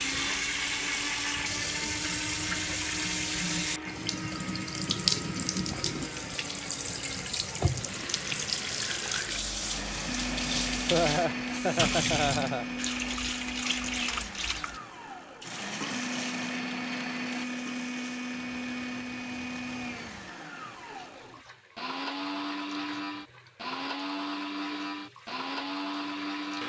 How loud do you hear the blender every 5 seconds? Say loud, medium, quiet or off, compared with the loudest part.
loud, medium, loud, loud, loud, loud.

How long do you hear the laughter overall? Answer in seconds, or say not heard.
2 s.